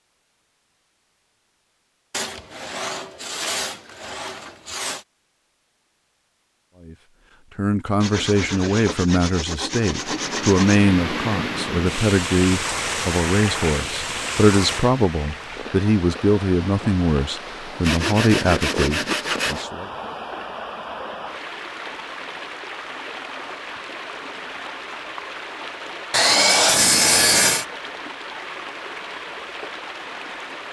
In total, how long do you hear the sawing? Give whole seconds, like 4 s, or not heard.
9 s.